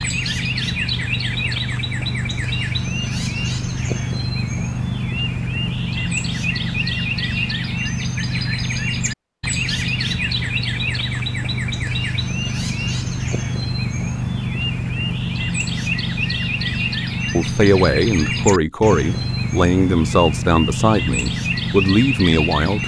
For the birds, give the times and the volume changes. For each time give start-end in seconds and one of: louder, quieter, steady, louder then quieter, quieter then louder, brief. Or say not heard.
0.0-22.8 steady.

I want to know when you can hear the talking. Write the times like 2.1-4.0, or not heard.
17.4-22.8.